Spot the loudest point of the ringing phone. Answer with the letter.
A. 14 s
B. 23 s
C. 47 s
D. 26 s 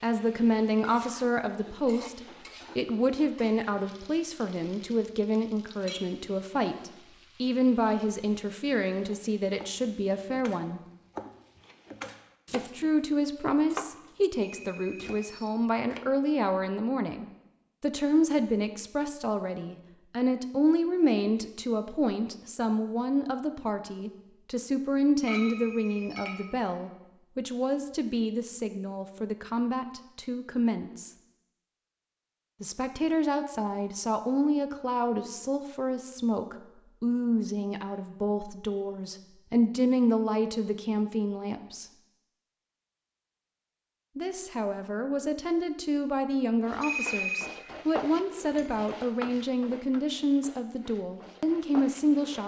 C.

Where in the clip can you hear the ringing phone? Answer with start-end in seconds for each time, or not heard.
14.4-15.5, 25.4-26.3, 46.8-47.5.